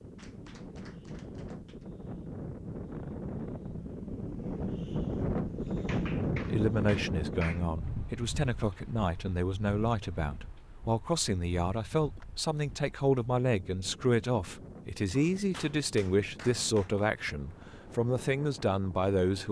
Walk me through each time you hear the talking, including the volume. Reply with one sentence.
The talking can be heard from 6.5 to 19.4 s, at a steady volume.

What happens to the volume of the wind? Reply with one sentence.
The volume of the wind goes up, then down.